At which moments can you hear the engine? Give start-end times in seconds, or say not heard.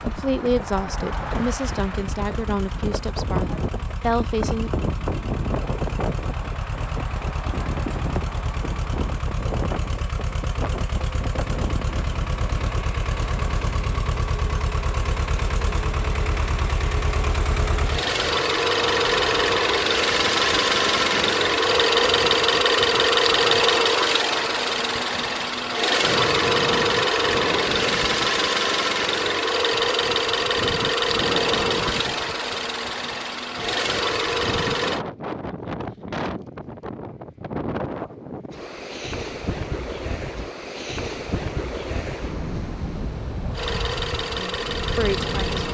0.0-35.0, 43.5-45.7.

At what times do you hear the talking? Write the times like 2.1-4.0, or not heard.
0.0-4.7, 44.4-45.7.